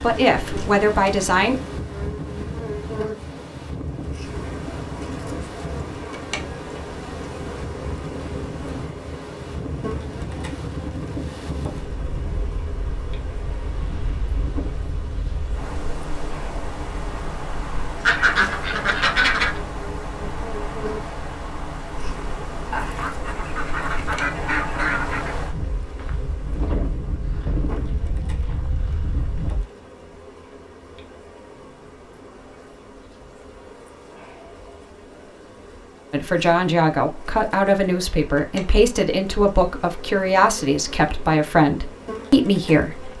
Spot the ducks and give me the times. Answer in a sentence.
The ducks can be heard from 18.1 to 19.6 s and from 22.7 to 25.4 s.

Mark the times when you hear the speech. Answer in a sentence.
You can hear the speech from 0.0 to 1.6 s and from 36.1 to 43.1 s.